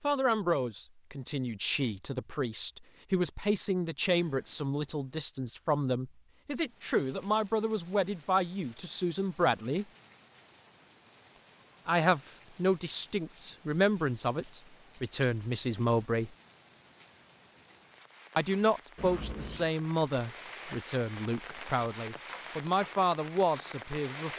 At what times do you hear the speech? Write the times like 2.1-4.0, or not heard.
0.0-9.8, 11.8-16.3, 18.4-24.3.